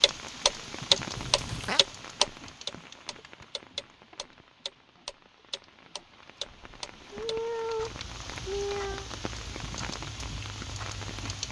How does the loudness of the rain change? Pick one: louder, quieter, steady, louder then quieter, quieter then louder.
quieter then louder.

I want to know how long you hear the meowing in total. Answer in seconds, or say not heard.
3 s.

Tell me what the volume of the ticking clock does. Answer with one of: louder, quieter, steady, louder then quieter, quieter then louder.
quieter.